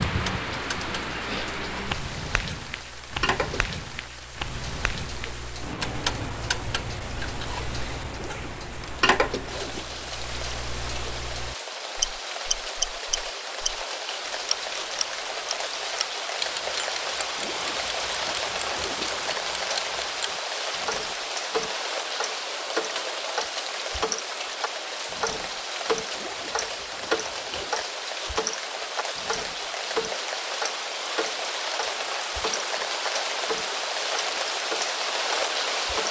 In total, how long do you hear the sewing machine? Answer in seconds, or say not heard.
not heard.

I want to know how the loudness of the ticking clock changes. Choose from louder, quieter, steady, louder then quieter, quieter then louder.
louder.